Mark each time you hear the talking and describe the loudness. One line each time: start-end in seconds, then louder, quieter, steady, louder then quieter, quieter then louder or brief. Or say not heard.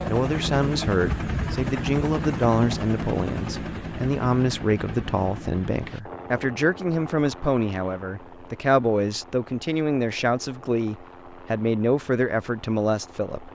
0.1-13.5 steady.